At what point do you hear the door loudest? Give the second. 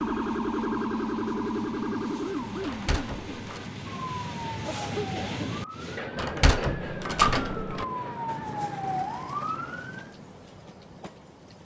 7 s.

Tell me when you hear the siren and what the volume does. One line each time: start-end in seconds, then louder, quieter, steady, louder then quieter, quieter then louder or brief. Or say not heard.
0.0-10.2 quieter then louder.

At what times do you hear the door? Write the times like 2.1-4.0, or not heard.
2.6-3.6, 6.2-7.8.